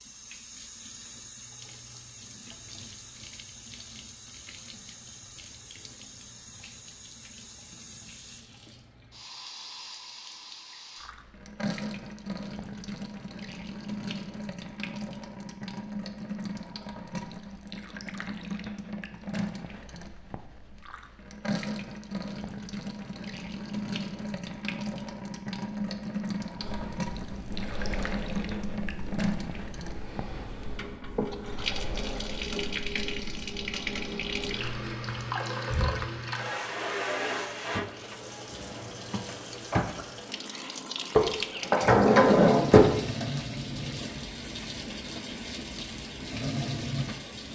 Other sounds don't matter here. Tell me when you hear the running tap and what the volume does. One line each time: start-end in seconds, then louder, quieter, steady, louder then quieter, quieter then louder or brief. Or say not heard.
0.0-47.5 louder.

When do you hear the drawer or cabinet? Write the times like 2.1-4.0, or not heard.
41.1-42.9.